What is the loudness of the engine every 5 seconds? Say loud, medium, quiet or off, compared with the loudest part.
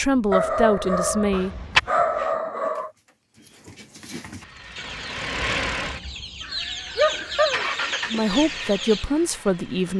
loud, medium.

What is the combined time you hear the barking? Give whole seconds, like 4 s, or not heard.
3 s.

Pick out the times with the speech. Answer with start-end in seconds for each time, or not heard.
0.0-1.6, 8.1-9.9.